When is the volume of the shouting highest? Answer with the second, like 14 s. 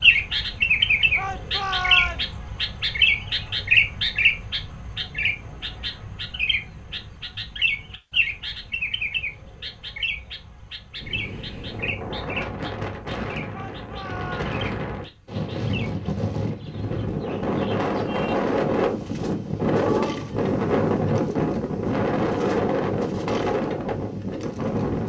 2 s.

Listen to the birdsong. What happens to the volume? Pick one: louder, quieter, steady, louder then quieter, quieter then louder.
quieter.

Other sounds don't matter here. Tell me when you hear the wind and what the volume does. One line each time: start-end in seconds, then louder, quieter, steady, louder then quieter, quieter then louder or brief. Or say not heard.
10.9-25.0 louder.